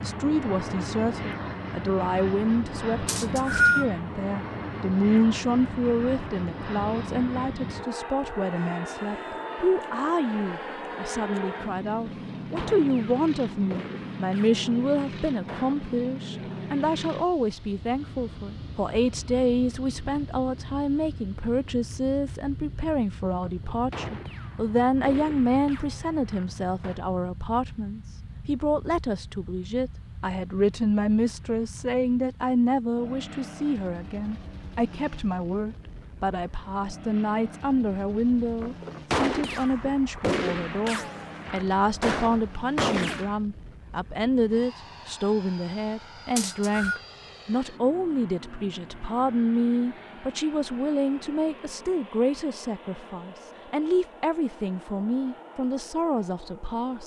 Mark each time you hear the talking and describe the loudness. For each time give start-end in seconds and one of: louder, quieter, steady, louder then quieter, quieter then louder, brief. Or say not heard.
0.0-57.0 steady.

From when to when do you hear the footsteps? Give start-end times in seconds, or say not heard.
not heard.